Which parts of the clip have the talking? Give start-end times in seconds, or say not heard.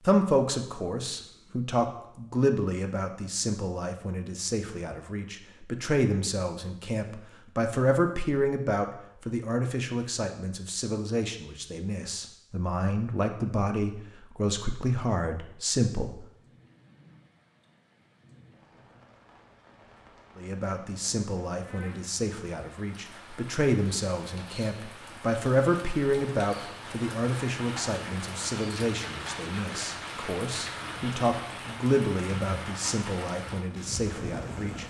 0.0-16.2, 20.4-34.8.